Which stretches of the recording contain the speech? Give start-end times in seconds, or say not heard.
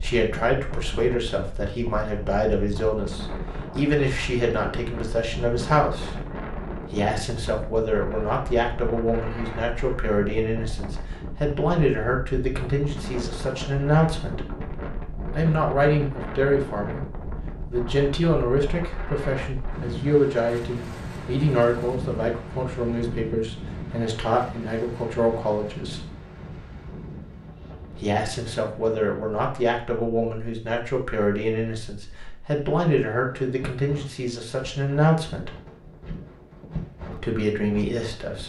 0.0-6.2, 6.8-14.4, 15.3-17.1, 17.7-26.0, 27.9-35.5, 37.1-38.4.